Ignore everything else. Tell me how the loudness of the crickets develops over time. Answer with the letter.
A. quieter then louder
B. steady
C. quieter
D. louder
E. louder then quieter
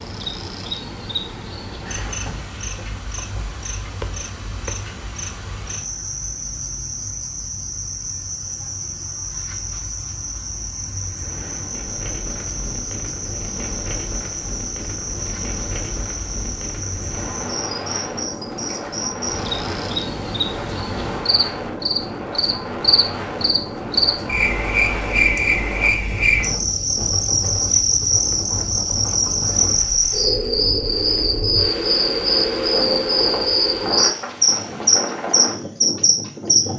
D.